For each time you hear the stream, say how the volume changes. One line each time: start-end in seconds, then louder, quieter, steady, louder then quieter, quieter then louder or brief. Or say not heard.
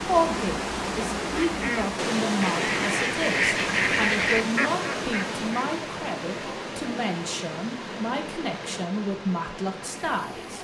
0.0-10.5 quieter.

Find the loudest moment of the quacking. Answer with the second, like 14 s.
4 s.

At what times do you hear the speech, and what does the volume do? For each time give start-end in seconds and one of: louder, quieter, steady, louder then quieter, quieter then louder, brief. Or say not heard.
0.0-10.5 steady.